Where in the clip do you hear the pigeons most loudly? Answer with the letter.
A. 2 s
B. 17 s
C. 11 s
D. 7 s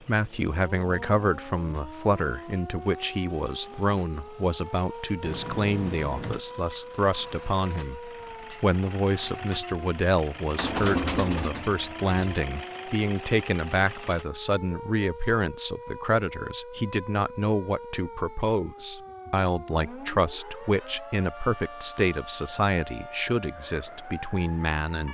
C.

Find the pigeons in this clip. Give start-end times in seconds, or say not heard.
10.6-12.4.